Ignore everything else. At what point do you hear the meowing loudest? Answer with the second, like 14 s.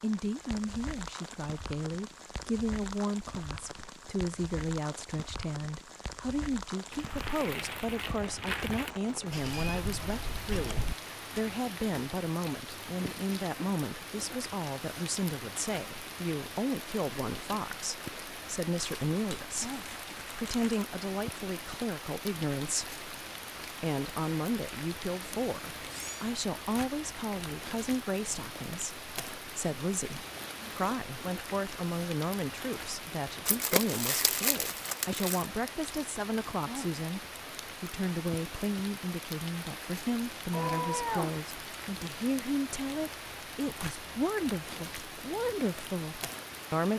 41 s.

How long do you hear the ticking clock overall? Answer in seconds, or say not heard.
not heard.